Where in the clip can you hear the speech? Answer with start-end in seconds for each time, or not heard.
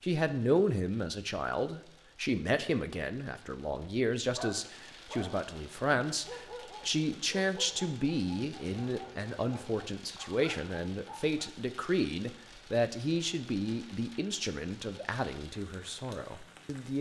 0.0-16.9.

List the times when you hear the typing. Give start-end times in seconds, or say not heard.
not heard.